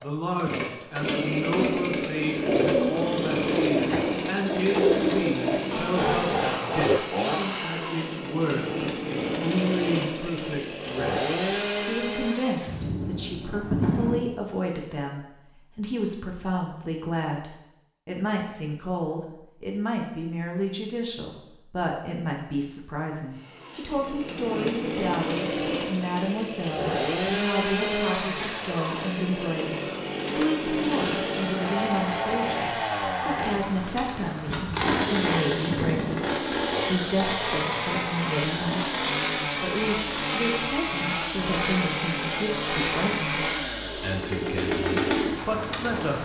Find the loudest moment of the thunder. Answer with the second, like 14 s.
14 s.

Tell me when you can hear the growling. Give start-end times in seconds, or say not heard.
5.7-7.0.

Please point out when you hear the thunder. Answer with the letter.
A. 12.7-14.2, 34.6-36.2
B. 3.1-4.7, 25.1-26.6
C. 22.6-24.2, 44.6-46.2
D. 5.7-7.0
A.